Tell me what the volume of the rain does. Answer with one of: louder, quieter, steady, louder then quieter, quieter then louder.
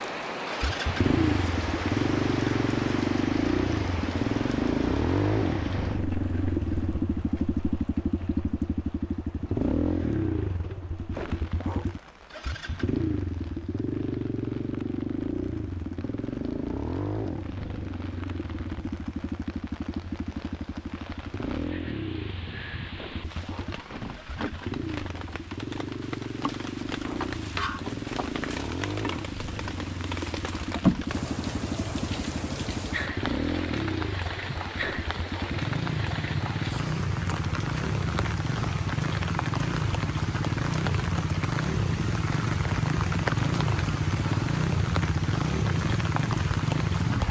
quieter then louder.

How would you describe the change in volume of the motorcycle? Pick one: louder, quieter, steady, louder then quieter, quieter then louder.
quieter then louder.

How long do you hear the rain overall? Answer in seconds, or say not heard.
47 s.